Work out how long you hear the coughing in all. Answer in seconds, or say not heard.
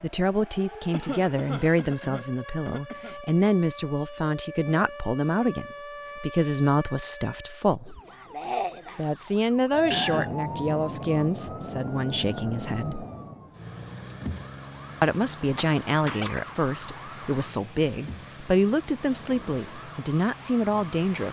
4 s.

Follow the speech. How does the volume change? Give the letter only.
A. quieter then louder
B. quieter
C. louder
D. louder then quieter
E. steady
E.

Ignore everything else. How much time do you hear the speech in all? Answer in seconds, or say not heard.
18 s.